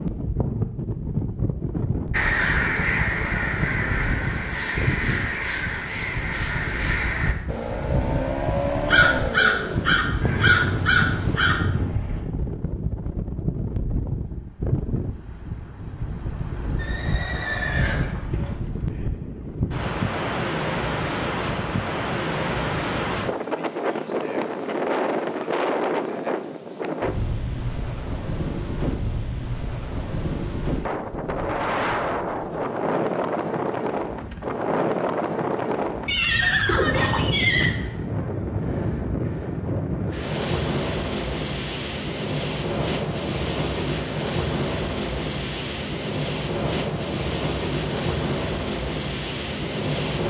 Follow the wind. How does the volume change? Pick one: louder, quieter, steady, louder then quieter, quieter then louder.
steady.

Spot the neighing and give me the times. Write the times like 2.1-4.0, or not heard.
10.2-12.2, 16.8-18.6, 36.0-37.8.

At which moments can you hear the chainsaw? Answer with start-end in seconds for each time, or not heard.
not heard.